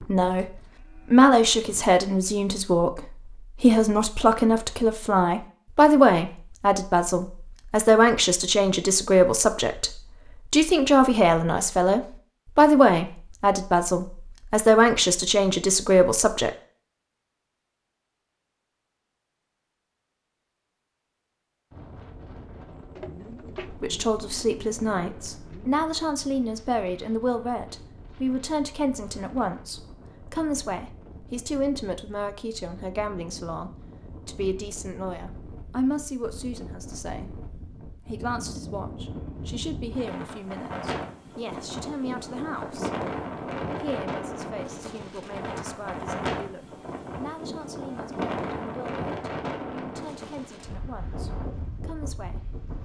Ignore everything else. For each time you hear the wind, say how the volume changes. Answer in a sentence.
You can hear the wind from 21.7 to 52.8 s, getting louder.